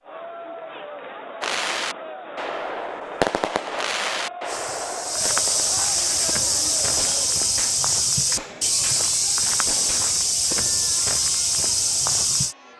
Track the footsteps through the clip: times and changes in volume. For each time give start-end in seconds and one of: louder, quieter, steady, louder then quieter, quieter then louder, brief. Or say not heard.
4.5-12.6 steady.